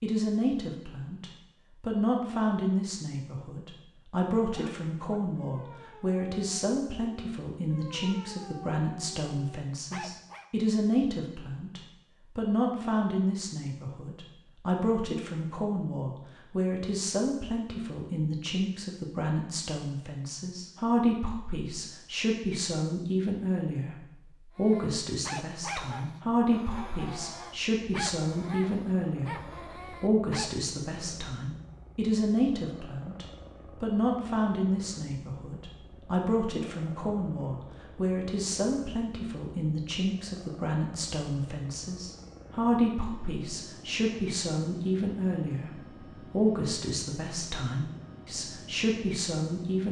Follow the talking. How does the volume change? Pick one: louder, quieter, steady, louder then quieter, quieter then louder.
steady.